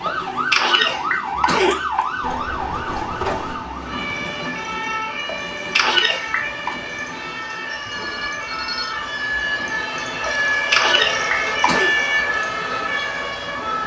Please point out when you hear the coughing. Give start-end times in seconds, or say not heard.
0.1-2.0, 5.2-6.8, 10.2-11.9.